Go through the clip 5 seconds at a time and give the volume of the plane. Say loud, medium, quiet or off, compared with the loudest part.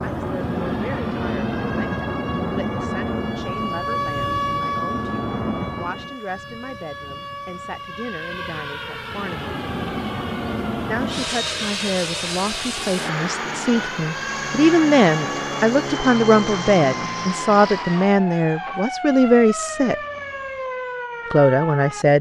loud, loud, loud, loud, off.